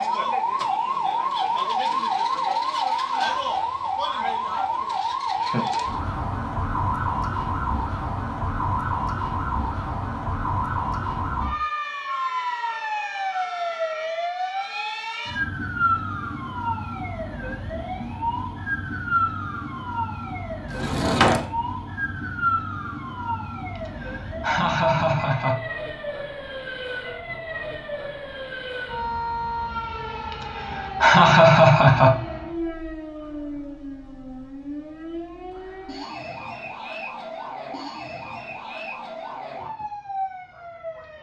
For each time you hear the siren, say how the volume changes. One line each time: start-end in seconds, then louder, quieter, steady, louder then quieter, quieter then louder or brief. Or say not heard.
0.0-41.1 quieter.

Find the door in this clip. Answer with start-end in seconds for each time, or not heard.
20.6-21.4.